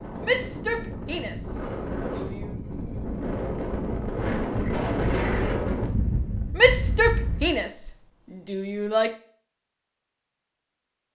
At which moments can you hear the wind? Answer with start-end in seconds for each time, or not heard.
0.0-7.6.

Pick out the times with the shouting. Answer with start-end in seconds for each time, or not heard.
0.2-2.5, 6.5-9.2.